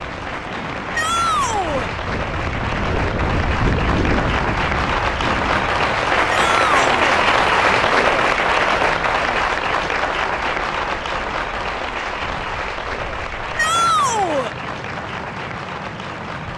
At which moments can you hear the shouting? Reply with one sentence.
You can hear the shouting from 0.9 to 1.9 s, from 6.2 to 7.0 s and from 13.6 to 14.6 s.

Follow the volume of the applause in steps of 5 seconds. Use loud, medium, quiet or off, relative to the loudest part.
medium, loud, medium, quiet.